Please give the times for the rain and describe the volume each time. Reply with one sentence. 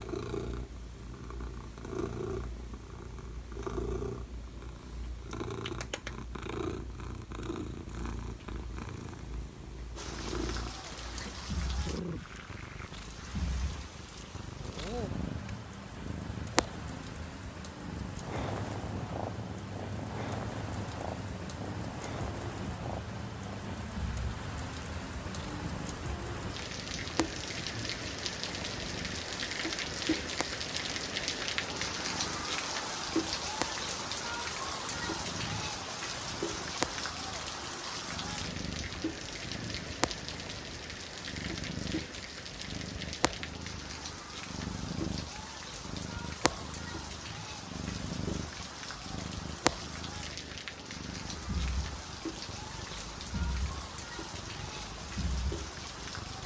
You can hear the rain from 9.9 to 56.4 s, getting louder then quieter.